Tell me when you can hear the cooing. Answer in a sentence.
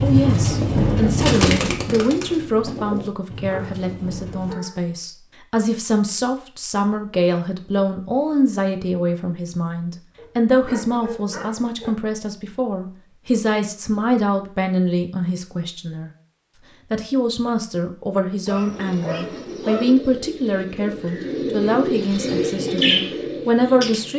The cooing can be heard from 0.0 to 4.5 s and from 18.7 to 24.1 s.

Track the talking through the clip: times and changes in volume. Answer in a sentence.
You can hear the talking from 0.0 to 16.1 s, at a steady volume; and from 16.9 to 24.1 s, at a steady volume.